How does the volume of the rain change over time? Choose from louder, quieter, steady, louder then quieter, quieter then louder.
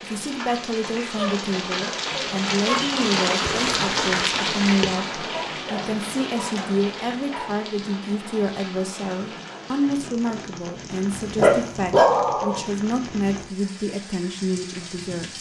quieter.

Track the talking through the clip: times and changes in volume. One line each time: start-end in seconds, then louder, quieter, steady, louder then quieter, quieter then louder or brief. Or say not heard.
0.0-15.3 steady.